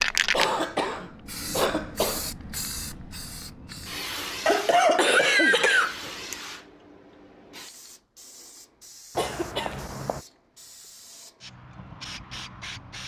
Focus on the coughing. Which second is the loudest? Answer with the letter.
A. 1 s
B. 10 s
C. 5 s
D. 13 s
C.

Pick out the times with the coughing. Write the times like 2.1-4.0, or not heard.
0.3-2.3, 4.5-6.3, 9.2-10.2.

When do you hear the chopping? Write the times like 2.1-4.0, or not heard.
not heard.